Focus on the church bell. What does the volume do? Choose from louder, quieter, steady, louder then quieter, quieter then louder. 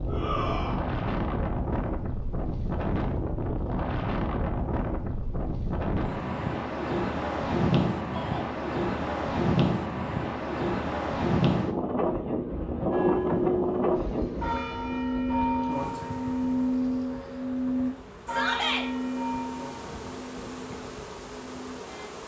quieter.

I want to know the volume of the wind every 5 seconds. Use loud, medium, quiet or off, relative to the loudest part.
loud, loud, loud, quiet, quiet.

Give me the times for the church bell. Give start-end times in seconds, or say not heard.
12.9-22.1.